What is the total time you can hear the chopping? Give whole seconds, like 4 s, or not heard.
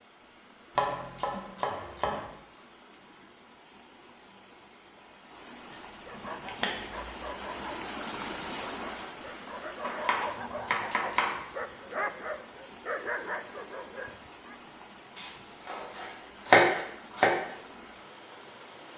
7 s.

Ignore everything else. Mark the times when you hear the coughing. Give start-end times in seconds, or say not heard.
not heard.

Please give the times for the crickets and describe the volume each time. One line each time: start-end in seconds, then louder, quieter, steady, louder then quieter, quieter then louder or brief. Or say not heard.
not heard.